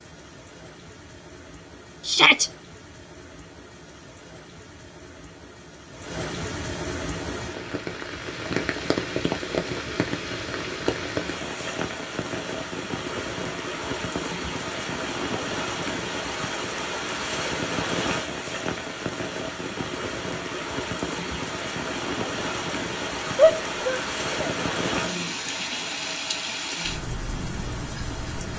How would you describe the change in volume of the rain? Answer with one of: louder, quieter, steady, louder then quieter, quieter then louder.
louder.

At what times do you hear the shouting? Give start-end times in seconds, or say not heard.
2.0-2.5, 23.4-24.6.